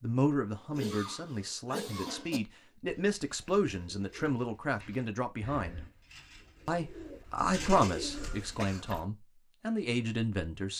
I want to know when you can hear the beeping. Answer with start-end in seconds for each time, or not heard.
not heard.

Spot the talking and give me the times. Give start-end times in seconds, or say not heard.
0.0-5.8, 6.7-10.7.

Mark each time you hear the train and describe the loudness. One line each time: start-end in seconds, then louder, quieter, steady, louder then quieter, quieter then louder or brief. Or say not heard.
not heard.